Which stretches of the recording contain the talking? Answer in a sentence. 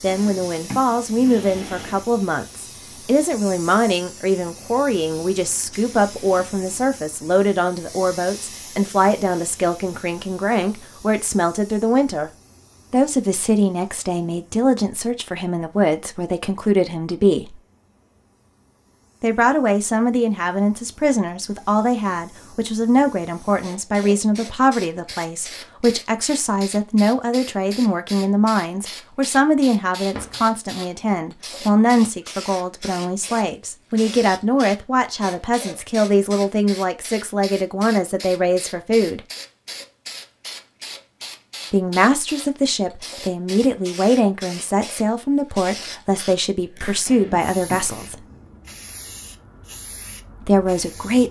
You can hear the talking from 0.0 to 12.3 s, from 12.9 to 17.6 s, from 19.2 to 39.2 s, from 41.7 to 48.2 s and from 50.4 to 51.2 s.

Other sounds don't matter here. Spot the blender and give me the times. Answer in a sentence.
You can't hear the blender here.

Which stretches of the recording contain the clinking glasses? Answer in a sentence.
The clinking glasses can't be heard in this clip.